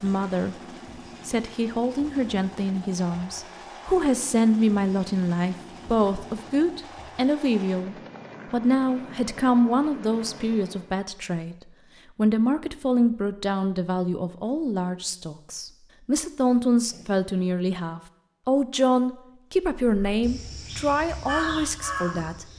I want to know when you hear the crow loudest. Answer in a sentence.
The loudest moment of the crow is at 21 seconds.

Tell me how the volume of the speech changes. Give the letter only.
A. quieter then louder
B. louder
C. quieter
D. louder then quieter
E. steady
E.